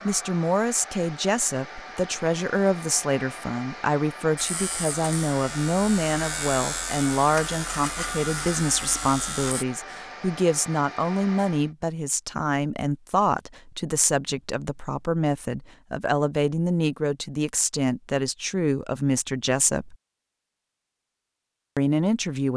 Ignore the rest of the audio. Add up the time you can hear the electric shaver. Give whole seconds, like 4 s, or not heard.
5 s.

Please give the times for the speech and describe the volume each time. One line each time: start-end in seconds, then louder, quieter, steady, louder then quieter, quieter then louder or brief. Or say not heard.
0.1-19.9 steady
21.8-22.5 brief.